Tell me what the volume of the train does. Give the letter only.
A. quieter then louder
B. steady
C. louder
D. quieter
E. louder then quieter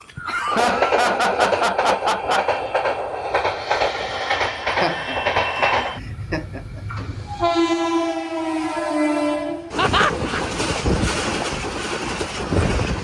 B.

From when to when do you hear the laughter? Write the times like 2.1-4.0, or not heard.
0.2-2.6, 4.8-6.8, 9.8-10.4.